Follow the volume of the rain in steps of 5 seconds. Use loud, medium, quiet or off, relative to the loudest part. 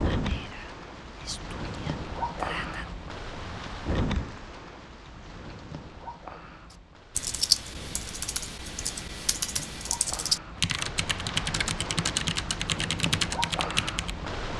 loud, medium, loud.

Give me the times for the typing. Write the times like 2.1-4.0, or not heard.
6.7-14.2.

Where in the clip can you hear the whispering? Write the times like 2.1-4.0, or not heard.
0.1-2.9.